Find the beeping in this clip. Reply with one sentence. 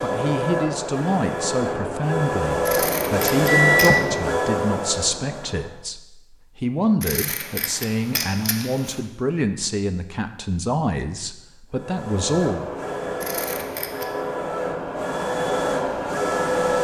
The beeping can be heard from 3.5 to 4.3 s.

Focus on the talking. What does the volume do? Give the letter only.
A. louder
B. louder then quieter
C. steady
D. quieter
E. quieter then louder
C.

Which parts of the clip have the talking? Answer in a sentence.
The talking can be heard from 0.0 to 12.7 s.